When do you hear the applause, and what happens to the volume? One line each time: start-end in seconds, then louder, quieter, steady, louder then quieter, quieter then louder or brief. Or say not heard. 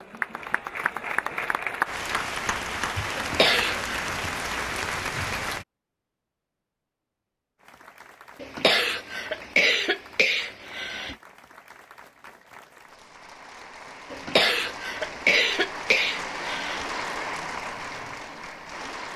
0.0-5.7 steady
7.5-19.1 louder.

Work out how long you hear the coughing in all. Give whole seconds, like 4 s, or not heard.
6 s.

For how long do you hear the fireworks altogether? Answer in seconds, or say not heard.
not heard.